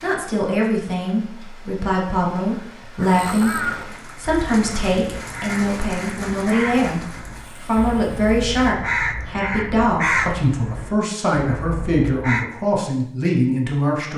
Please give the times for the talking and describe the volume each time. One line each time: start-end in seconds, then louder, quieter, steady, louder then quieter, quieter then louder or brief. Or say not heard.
0.0-14.1 steady.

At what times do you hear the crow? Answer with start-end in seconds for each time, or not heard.
3.0-12.4.